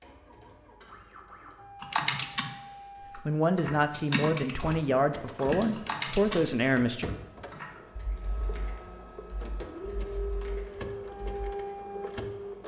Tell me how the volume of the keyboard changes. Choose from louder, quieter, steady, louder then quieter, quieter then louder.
quieter.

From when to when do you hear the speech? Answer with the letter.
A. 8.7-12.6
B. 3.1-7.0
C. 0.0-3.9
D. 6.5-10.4
B.